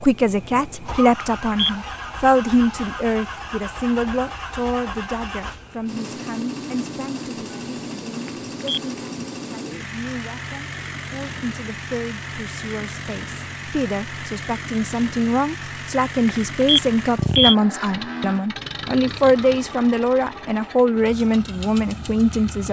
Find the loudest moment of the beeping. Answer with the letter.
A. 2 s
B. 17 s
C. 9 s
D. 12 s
B.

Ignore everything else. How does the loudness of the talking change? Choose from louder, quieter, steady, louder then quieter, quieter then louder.
quieter then louder.